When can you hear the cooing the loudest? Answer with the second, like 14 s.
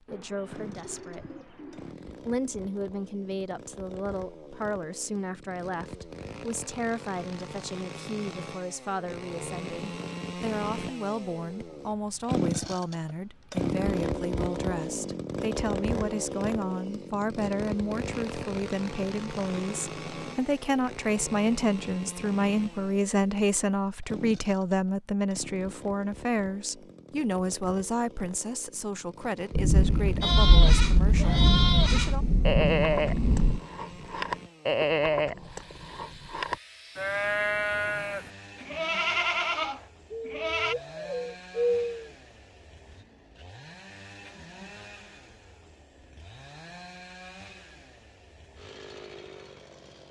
42 s.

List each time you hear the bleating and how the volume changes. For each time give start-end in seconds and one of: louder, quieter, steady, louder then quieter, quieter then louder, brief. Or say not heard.
30.2-40.8 steady.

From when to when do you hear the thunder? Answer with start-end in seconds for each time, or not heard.
29.5-33.6.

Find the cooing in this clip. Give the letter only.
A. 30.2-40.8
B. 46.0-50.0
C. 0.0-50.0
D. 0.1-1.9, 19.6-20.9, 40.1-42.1
D.